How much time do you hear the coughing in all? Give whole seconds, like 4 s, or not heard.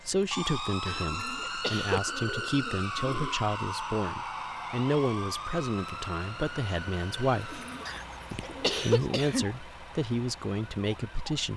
3 s.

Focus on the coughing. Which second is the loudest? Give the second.
9 s.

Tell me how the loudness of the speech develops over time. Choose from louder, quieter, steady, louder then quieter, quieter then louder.
steady.